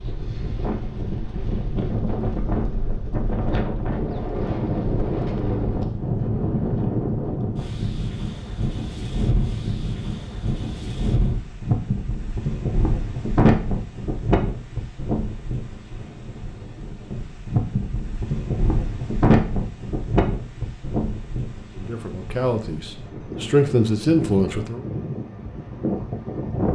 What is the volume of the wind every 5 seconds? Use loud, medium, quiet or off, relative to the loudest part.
loud, loud, loud, loud, medium, loud.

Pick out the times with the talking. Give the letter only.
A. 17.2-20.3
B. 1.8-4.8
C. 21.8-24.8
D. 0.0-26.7
C.